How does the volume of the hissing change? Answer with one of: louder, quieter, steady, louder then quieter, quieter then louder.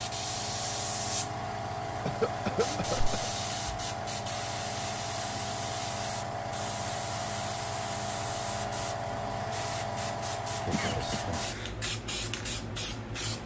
steady.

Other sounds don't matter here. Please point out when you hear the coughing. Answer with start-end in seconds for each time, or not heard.
2.0-3.2, 10.7-11.8.